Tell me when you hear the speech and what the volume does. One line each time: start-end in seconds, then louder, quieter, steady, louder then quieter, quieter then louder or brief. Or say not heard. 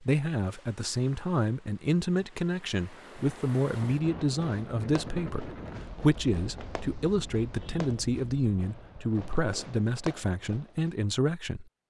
0.0-11.7 steady.